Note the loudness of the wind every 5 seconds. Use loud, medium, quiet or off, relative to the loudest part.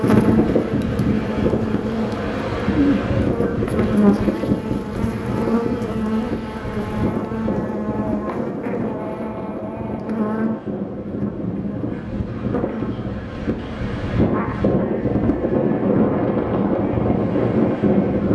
loud, medium, medium, loud.